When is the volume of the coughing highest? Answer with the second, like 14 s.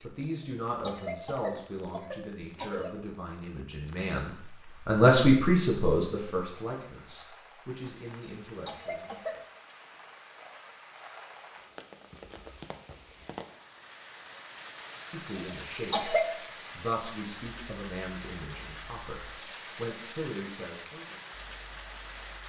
16 s.